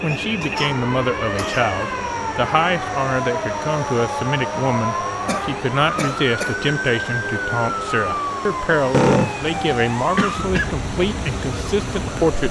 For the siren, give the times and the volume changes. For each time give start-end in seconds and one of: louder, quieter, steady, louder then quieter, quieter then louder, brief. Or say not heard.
0.0-12.4 steady.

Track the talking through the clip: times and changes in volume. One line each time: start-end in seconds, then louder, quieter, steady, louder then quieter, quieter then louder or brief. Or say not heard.
0.0-12.4 steady.